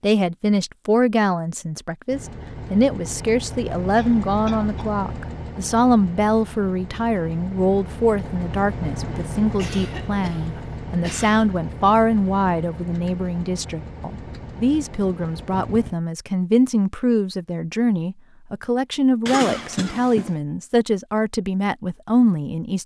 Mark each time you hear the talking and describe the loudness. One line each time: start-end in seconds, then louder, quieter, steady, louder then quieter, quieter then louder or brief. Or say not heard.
0.0-22.8 steady.